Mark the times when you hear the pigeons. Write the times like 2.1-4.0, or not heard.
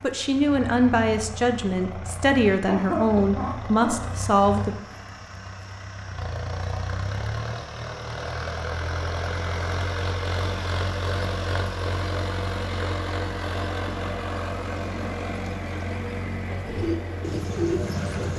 16.6-18.3.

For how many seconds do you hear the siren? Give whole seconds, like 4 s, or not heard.
not heard.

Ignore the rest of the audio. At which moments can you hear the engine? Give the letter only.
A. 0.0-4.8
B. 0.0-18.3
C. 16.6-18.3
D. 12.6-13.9
B.